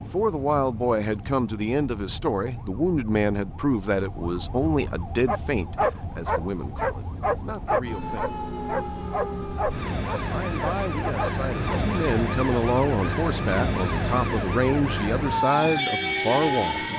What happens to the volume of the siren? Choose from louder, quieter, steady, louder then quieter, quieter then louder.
louder.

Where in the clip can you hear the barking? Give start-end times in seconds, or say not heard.
5.2-11.8.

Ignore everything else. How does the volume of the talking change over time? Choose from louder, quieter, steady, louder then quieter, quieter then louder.
quieter then louder.